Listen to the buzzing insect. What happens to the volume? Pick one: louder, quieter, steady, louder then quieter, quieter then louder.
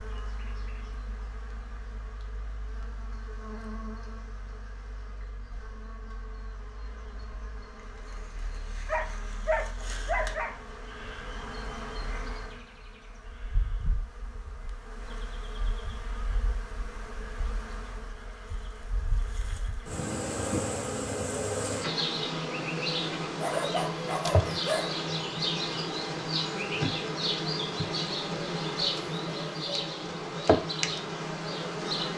louder.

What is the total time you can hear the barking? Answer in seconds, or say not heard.
3 s.